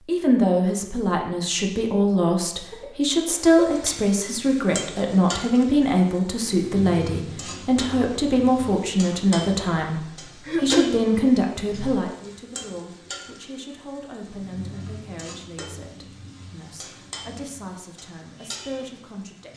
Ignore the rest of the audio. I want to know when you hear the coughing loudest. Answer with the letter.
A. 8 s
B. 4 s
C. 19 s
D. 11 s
D.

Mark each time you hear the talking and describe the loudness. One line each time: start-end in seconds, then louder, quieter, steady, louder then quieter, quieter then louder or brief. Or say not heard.
0.1-19.5 quieter.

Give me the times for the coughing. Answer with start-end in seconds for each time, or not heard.
2.7-3.8, 10.4-11.0.